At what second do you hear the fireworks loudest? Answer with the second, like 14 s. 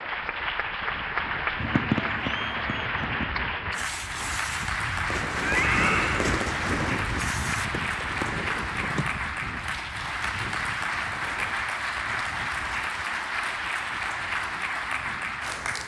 2 s.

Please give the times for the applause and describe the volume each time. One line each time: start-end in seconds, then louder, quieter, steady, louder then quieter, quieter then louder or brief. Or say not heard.
0.0-15.8 steady.